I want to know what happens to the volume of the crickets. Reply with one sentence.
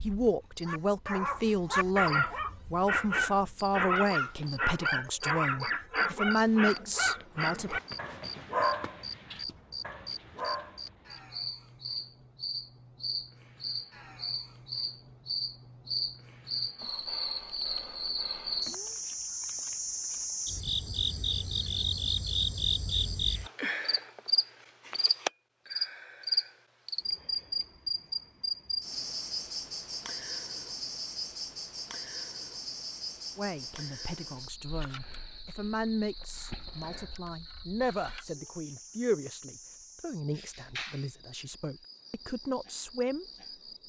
The loudness of the crickets goes up, then down.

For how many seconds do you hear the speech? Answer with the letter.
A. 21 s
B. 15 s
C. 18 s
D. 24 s
C.